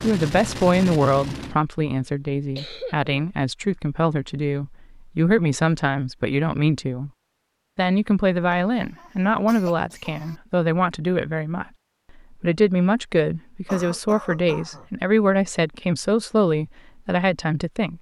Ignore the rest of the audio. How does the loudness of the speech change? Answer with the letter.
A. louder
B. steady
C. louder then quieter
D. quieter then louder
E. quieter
B.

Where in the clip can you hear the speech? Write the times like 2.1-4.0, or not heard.
0.0-7.1, 7.8-11.7, 12.4-17.9.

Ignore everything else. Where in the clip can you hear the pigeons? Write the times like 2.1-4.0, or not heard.
not heard.